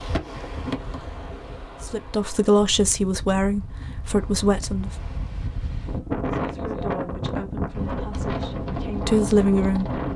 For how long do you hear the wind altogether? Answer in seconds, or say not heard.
10 s.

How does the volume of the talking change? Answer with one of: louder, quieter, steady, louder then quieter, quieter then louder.
quieter then louder.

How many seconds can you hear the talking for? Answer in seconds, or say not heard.
7 s.